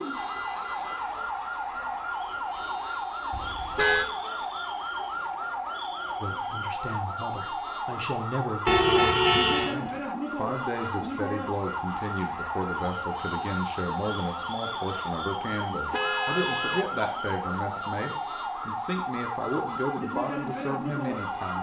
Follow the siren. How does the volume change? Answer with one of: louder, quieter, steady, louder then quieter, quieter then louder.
steady.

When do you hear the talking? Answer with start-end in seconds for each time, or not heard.
6.2-21.5.